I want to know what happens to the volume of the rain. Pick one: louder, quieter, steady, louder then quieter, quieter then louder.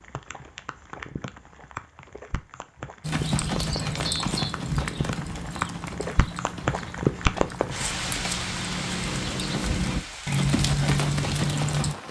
louder then quieter.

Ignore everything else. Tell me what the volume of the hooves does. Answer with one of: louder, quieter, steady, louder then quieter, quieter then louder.
quieter then louder.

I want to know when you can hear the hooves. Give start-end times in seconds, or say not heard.
3.0-11.9.